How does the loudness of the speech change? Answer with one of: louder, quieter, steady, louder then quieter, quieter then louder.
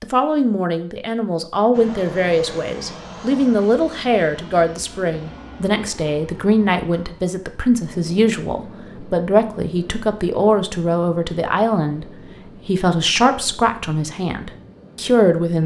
steady.